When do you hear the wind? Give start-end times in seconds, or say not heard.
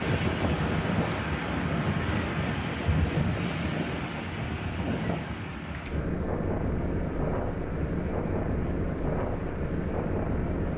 0.0-10.7.